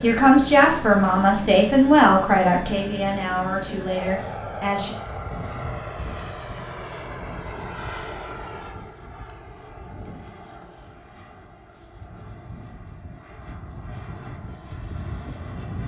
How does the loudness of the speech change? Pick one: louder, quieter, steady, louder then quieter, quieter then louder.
quieter.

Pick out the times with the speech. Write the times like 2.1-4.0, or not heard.
0.0-5.0.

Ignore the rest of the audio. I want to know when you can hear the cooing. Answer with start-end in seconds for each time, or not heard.
not heard.